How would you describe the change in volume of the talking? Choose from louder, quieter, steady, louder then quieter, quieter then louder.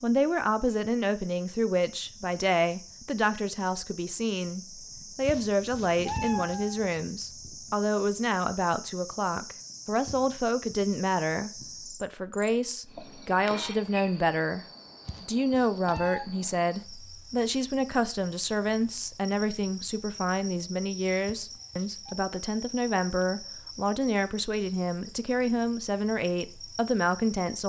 steady.